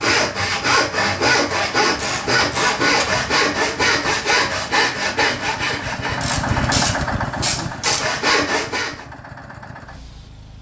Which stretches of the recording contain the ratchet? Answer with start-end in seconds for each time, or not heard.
1.9-3.4, 6.2-8.1.